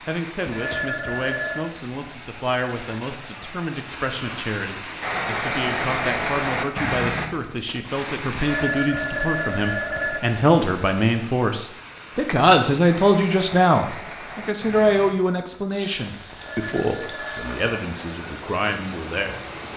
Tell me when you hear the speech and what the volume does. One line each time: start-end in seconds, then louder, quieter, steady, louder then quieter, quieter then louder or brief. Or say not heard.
0.1-19.7 louder then quieter.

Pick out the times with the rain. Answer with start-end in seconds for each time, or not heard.
0.0-19.7.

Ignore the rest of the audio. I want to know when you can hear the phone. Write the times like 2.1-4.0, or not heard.
0.5-1.8, 8.3-10.4, 16.3-17.8.